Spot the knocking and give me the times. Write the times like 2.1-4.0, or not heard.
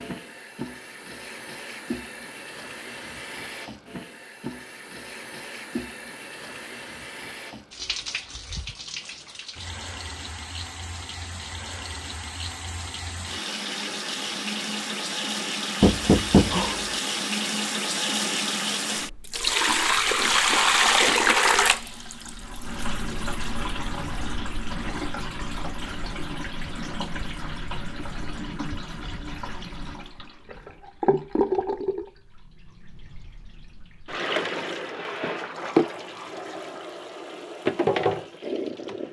15.8-16.8.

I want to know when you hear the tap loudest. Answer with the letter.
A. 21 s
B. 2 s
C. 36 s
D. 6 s
A.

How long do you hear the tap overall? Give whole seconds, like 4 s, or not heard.
39 s.